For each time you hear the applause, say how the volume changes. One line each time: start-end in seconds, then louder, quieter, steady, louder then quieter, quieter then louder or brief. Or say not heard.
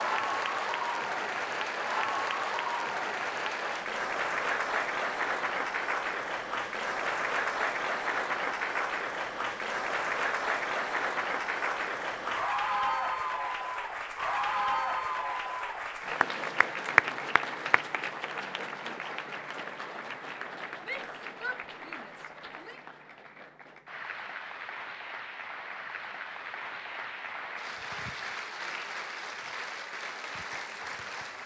0.0-31.4 quieter.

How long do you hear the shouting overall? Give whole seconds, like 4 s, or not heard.
2 s.